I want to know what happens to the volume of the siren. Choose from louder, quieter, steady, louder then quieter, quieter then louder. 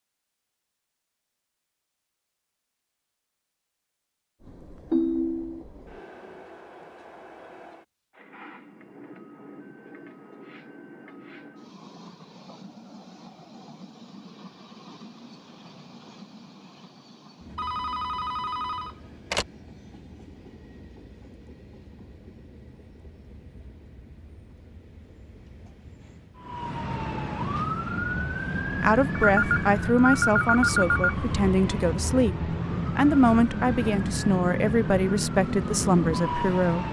steady.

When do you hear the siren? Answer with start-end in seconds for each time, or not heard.
26.4-36.8.